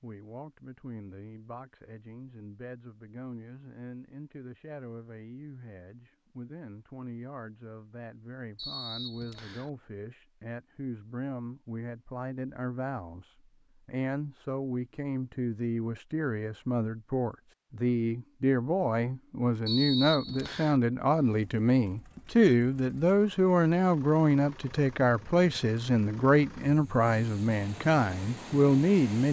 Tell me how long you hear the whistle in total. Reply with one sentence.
You can hear the whistle for 2 seconds altogether.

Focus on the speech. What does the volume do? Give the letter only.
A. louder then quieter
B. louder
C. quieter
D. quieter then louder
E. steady
B.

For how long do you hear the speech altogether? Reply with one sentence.
You can hear the speech for 29 seconds altogether.